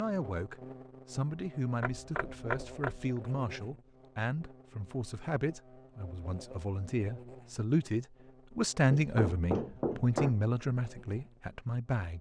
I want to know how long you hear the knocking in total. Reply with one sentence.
The knocking can be heard for 3 seconds in total.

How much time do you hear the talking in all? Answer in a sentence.
The talking can be heard for 12 seconds in total.